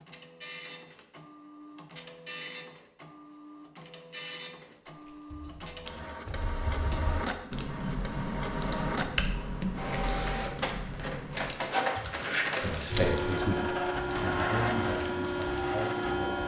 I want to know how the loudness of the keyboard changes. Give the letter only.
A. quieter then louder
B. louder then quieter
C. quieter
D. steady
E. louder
B.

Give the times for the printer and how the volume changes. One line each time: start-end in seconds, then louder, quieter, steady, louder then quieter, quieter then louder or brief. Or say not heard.
0.0-16.4 louder.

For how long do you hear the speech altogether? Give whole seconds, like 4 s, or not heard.
4 s.